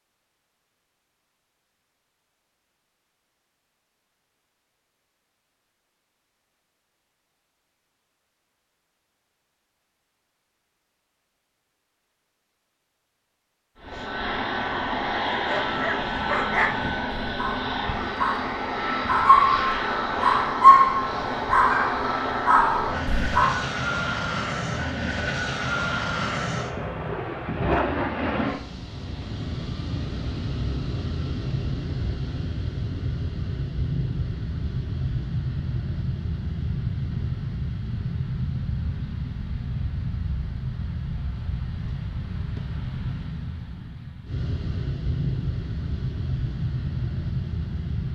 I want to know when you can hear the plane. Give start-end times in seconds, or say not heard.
13.8-48.0.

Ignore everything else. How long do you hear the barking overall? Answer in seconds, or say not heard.
8 s.